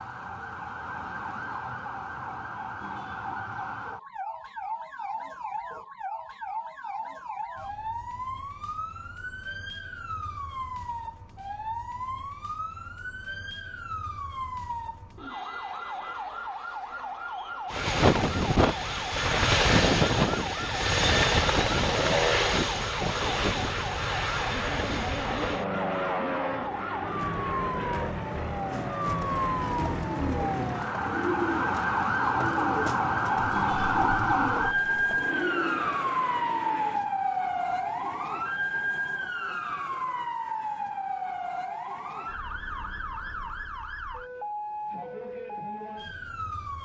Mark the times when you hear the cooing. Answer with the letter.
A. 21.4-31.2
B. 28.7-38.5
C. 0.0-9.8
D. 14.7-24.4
B.